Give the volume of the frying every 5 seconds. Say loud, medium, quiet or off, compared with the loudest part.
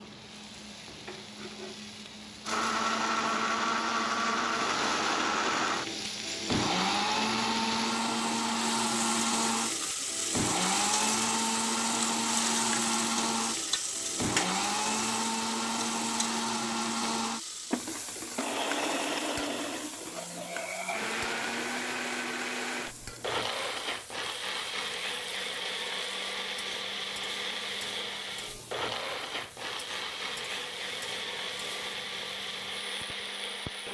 medium, loud, loud, medium, quiet, quiet, quiet.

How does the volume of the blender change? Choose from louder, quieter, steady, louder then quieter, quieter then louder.
quieter.